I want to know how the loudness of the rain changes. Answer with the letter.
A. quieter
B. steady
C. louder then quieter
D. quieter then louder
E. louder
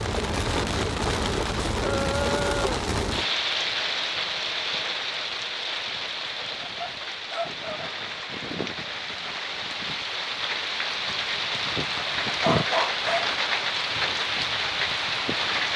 D.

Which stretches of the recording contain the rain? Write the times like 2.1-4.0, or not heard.
0.0-15.7.